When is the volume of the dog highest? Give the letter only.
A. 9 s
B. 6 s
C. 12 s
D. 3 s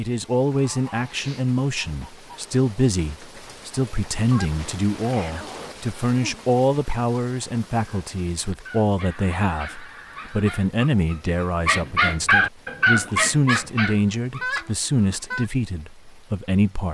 C.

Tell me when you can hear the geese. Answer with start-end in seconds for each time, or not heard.
0.5-2.3, 4.3-5.8, 9.1-10.6, 13.4-15.5.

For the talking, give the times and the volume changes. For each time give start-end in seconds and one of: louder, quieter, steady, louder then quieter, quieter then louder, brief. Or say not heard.
0.0-16.9 steady.